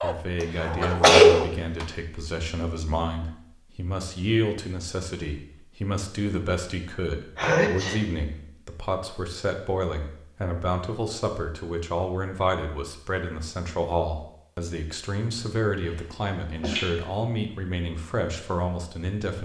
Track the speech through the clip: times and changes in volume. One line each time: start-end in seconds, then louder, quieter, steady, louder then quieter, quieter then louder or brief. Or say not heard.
0.0-19.3 steady.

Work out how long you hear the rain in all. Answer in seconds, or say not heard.
not heard.